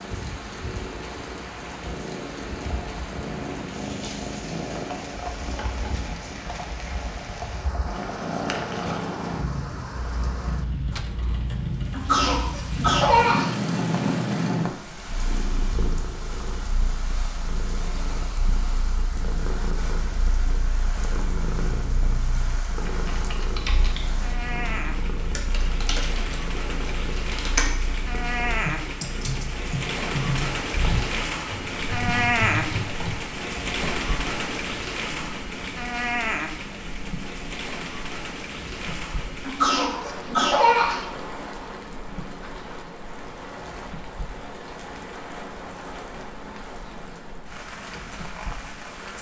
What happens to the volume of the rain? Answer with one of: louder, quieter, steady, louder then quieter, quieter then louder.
louder then quieter.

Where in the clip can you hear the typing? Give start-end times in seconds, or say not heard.
21.6-33.1.